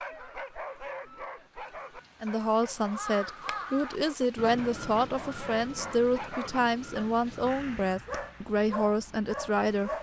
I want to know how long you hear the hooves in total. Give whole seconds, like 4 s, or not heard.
not heard.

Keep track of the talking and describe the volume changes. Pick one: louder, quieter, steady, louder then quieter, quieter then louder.
steady.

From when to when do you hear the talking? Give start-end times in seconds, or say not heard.
2.2-9.9.